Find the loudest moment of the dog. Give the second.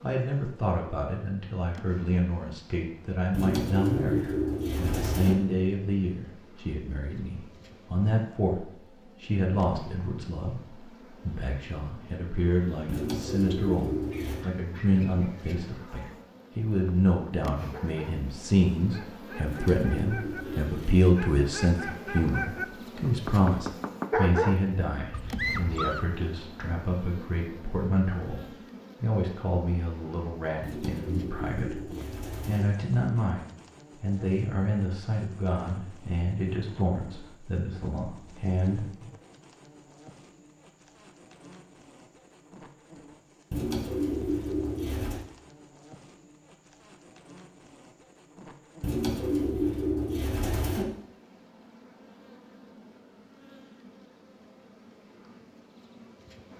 24 s.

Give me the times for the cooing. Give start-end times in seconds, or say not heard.
3.3-5.3, 12.8-14.4, 19.4-21.1, 30.6-32.6, 43.5-45.2, 48.8-50.9.